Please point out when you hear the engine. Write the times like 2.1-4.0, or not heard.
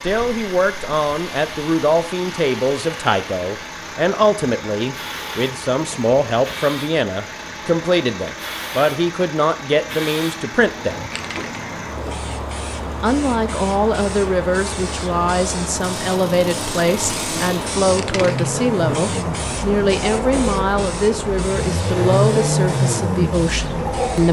0.0-24.2.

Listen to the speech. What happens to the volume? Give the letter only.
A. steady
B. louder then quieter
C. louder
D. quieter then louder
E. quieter
A.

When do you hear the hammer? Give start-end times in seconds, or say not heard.
not heard.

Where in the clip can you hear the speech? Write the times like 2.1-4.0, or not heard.
0.0-11.0, 13.0-24.2.